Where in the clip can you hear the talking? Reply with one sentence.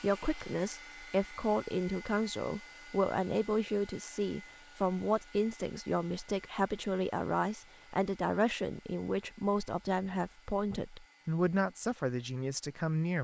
The talking can be heard from 0.0 to 13.1 s.